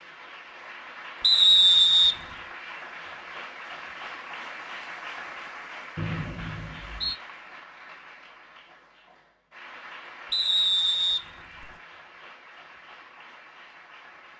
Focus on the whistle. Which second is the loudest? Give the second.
2 s.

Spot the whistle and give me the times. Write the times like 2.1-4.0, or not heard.
1.2-2.1, 6.0-7.2, 10.3-11.7.